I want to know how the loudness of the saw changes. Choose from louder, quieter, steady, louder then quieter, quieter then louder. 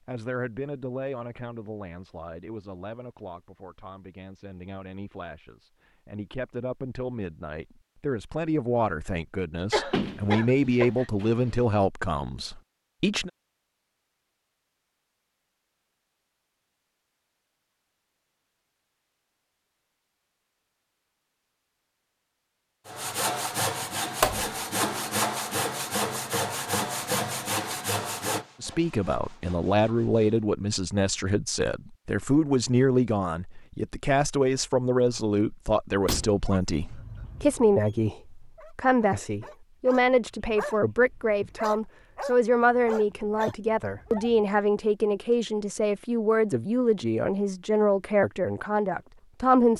quieter.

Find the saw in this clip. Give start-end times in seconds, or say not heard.
22.9-30.4.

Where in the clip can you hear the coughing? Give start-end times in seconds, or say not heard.
9.7-11.1.